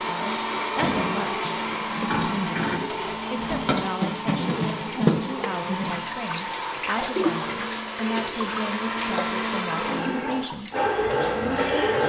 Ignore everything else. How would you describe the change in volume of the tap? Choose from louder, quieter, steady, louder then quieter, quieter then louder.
louder then quieter.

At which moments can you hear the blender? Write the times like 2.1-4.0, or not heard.
0.0-12.0.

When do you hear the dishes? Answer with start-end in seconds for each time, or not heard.
not heard.